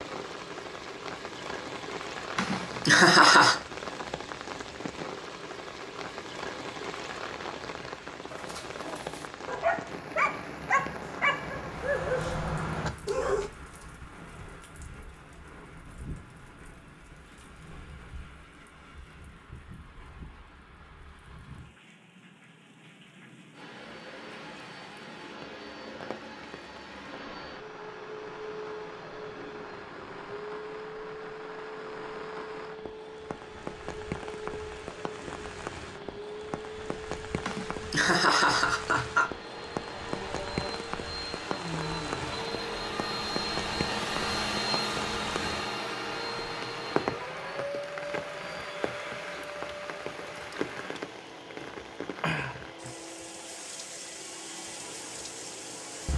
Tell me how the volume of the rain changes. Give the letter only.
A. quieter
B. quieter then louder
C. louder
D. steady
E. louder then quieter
B.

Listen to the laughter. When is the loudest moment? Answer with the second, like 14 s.
3 s.